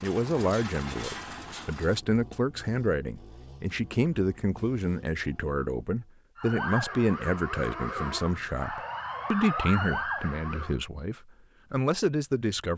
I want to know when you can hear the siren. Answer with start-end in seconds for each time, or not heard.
6.3-10.8.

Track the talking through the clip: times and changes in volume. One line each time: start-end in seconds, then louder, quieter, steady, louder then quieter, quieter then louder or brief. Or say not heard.
0.0-12.7 steady.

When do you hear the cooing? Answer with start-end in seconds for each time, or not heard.
not heard.